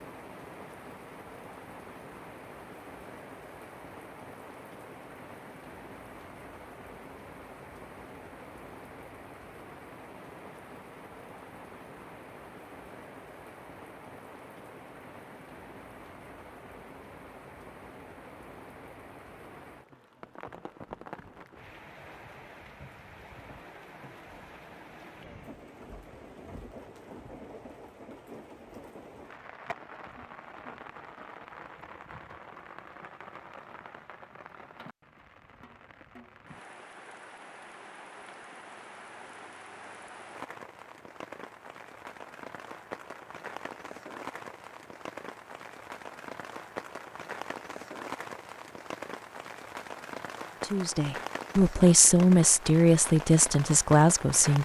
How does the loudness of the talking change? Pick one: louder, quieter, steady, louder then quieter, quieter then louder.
steady.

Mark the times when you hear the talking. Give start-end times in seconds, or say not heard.
50.6-54.6.